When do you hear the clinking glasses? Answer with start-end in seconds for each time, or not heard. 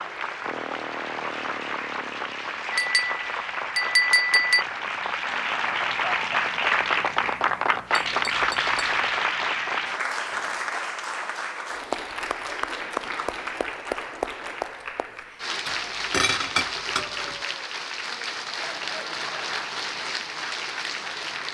2.7-4.7, 8.1-8.9, 15.7-17.4.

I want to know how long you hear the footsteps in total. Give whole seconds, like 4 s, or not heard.
not heard.